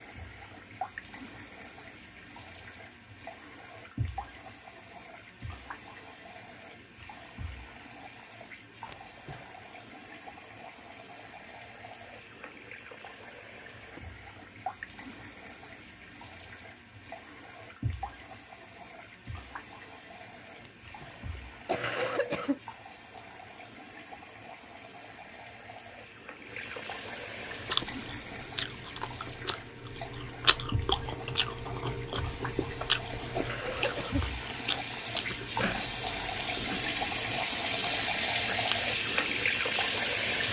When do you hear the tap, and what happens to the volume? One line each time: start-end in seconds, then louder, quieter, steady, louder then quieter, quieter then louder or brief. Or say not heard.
0.0-40.4 louder.